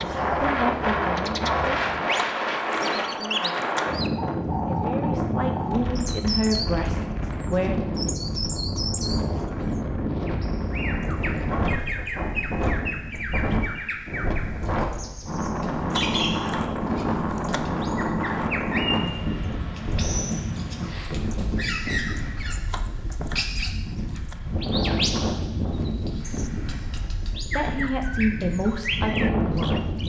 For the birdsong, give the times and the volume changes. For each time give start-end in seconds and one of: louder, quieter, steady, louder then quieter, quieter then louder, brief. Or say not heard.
0.0-30.0 steady.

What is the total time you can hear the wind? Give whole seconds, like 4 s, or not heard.
30 s.